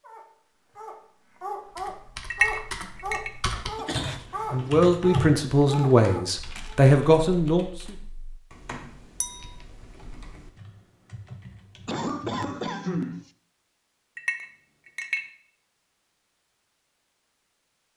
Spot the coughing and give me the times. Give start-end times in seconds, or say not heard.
3.5-5.0, 11.8-13.2.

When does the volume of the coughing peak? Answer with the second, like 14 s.
13 s.